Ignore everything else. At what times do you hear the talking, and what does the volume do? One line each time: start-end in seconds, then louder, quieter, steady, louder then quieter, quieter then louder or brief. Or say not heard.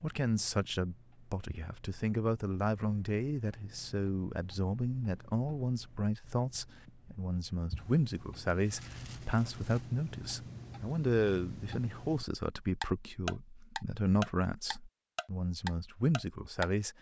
0.0-16.9 steady.